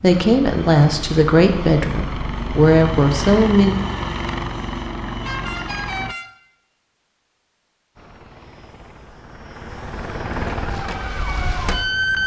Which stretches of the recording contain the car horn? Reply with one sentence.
The car horn can be heard from 5.2 to 6.3 s.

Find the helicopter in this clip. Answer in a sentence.
You can hear the helicopter from 0.0 to 6.2 s and from 8.0 to 12.2 s.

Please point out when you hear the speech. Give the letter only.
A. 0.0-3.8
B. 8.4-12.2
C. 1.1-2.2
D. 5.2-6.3
A.